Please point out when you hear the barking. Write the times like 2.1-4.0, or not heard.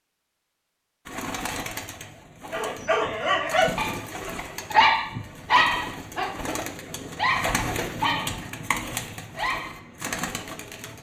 2.5-10.9.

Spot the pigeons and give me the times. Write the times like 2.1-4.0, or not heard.
1.1-10.9.